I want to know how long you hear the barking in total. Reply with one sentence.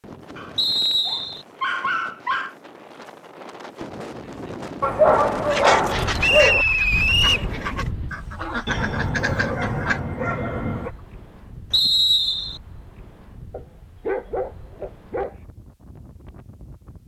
The barking can be heard for 8 seconds in total.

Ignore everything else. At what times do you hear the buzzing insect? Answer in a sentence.
The buzzing insect can't be heard in this clip.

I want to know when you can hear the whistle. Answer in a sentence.
The whistle can be heard from 0.6 to 1.4 s, from 6.2 to 7.5 s and from 11.7 to 12.6 s.